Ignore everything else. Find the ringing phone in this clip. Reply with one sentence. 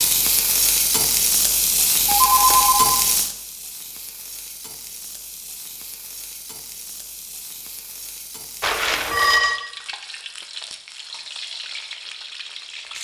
The ringing phone can be heard from 2.0 to 3.0 s and from 8.6 to 9.6 s.